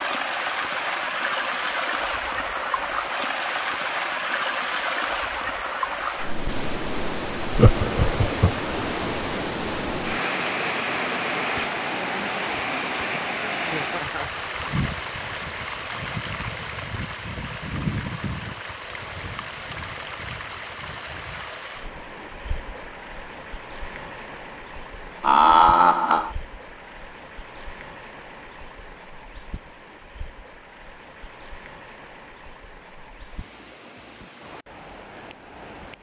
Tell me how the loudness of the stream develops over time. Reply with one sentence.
The volume of the stream goes down.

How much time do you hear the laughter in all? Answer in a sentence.
The laughter can be heard for 3 seconds in total.